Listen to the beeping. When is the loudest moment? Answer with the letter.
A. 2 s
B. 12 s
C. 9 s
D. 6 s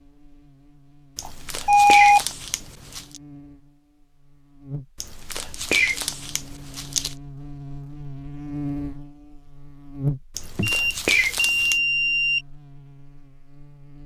A.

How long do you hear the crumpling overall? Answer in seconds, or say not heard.
6 s.